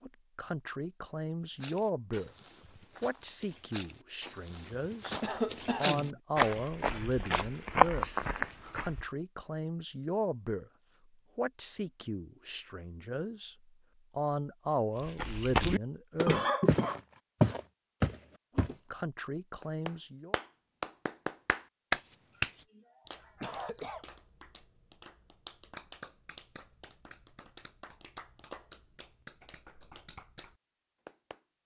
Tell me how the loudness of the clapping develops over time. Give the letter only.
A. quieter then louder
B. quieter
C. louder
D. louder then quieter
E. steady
B.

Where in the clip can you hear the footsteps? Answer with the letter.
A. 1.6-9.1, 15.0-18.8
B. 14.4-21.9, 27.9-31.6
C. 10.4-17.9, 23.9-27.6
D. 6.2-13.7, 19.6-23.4
A.